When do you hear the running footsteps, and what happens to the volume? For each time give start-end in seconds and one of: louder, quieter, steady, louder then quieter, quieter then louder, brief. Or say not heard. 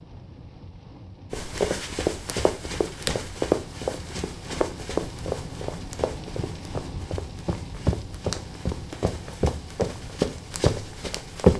1.3-11.5 quieter then louder.